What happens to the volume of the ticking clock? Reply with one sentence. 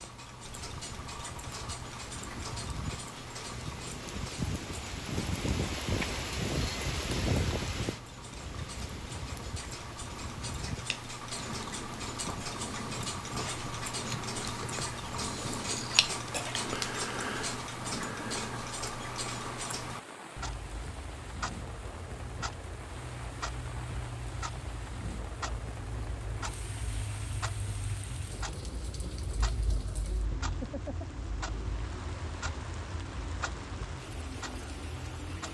The volume of the ticking clock goes up, then down.